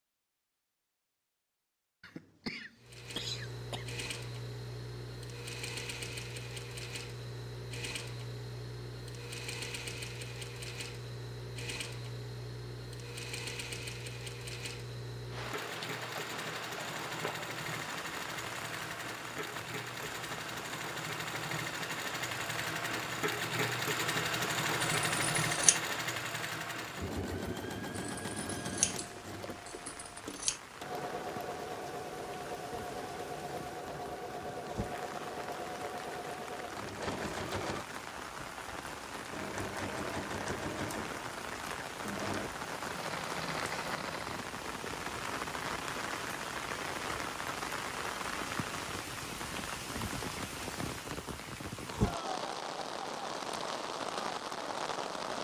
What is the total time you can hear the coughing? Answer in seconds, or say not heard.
2 s.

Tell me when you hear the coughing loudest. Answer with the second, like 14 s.
3 s.